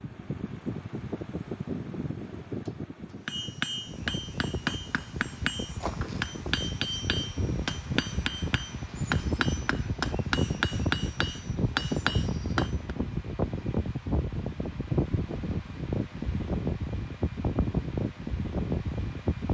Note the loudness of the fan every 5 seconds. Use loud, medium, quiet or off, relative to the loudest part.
medium, loud, loud, loud.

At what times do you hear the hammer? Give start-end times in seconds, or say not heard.
3.2-12.9.